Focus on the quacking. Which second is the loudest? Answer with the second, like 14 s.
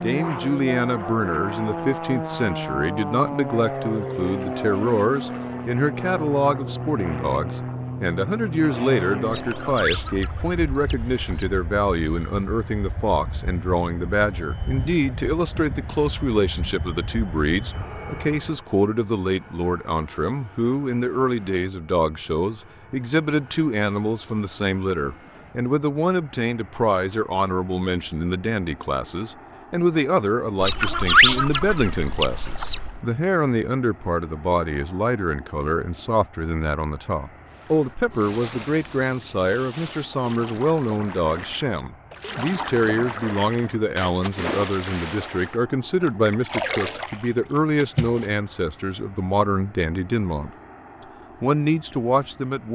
31 s.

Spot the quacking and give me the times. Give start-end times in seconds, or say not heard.
9.2-11.6, 30.6-33.0.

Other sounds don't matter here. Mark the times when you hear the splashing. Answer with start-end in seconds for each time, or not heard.
37.5-48.3.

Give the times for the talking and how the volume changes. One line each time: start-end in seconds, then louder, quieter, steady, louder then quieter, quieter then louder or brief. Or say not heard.
0.0-50.5 steady
51.4-52.6 brief.